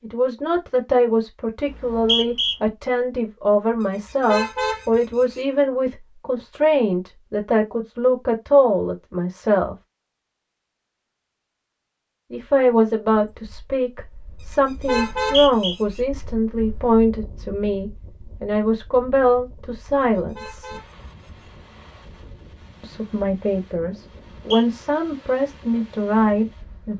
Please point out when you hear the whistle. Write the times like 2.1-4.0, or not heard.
1.7-2.5, 14.9-15.8, 24.1-24.6.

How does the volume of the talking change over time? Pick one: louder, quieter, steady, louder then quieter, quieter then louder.
steady.